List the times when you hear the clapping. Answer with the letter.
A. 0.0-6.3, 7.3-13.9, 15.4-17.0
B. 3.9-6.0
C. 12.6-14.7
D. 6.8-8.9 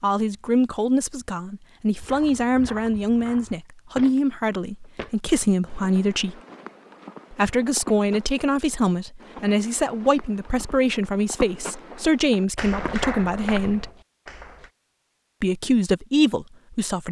C.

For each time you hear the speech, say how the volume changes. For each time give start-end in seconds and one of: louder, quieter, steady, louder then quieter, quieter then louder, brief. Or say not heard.
0.0-6.3 steady
7.3-13.9 steady
15.4-17.0 brief.